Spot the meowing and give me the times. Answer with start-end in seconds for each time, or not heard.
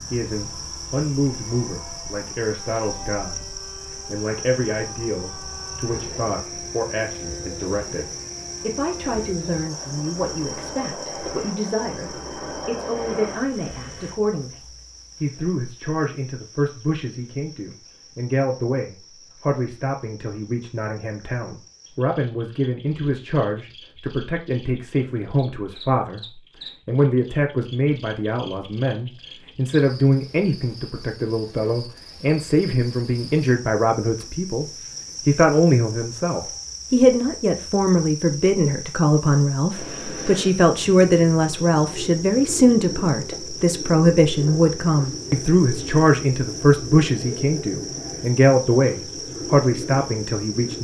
not heard.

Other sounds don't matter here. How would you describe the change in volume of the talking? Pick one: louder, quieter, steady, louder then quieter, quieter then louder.
louder.